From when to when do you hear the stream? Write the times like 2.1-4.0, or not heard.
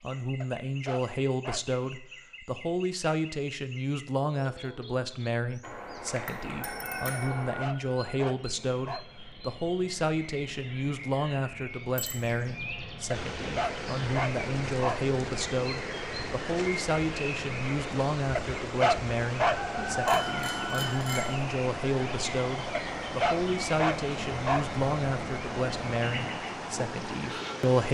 13.1-27.8.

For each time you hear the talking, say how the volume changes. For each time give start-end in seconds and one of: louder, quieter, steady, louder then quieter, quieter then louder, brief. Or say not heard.
0.0-27.8 steady.